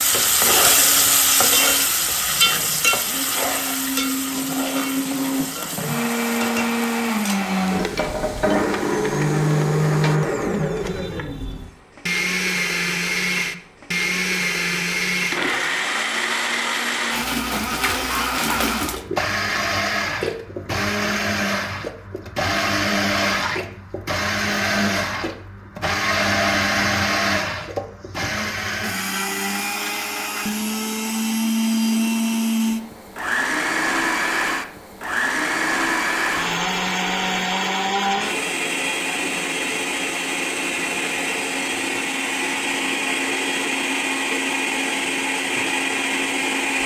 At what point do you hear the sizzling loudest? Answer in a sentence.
The loudest moment of the sizzling is at 1 second.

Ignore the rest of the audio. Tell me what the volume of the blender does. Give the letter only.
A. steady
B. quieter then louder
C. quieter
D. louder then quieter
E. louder
A.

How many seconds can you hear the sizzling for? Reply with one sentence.
You can hear the sizzling for 10 seconds altogether.